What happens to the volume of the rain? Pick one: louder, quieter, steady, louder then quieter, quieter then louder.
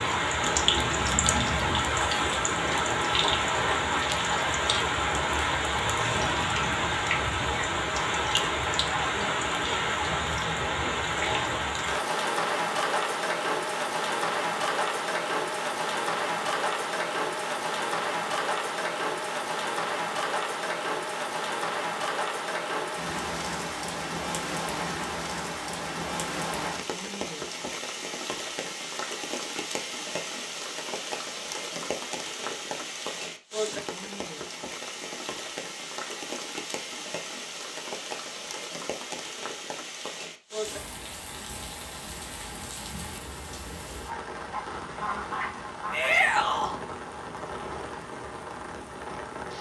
quieter.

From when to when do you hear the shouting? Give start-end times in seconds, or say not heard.
45.9-46.8.